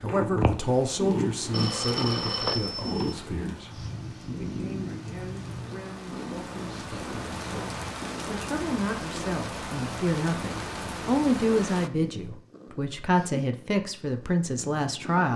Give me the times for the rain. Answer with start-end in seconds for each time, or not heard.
0.2-11.9.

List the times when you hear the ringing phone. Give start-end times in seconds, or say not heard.
1.5-3.1.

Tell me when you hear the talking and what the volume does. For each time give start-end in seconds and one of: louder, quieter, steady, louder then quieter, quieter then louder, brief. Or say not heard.
0.0-15.3 quieter then louder.